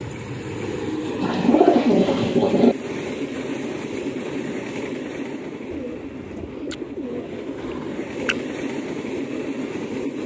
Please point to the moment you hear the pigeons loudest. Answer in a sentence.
The volume of the pigeons peaks at 2 seconds.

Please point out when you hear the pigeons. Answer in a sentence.
The pigeons can be heard from 1.2 to 2.8 s and from 5.7 to 8.4 s.